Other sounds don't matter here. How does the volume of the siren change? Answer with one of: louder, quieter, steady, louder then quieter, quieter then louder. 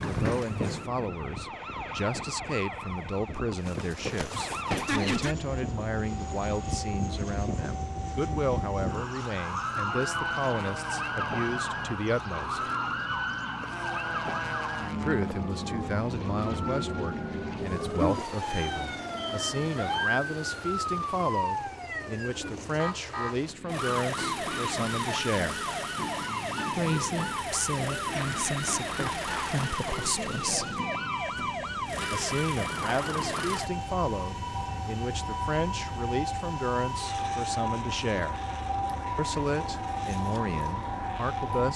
steady.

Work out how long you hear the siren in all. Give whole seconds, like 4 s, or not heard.
42 s.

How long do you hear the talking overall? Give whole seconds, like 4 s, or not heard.
36 s.